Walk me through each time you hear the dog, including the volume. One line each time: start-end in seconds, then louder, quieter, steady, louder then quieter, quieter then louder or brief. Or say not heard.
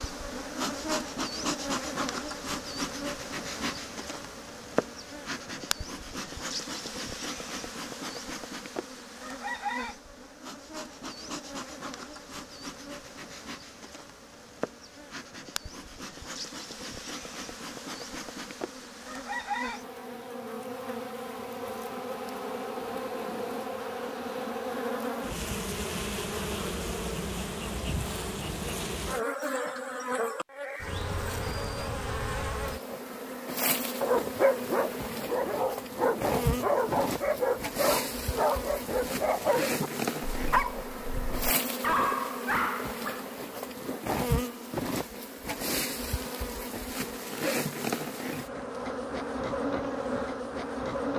34.0-43.2 steady.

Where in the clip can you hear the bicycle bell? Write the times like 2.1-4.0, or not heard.
not heard.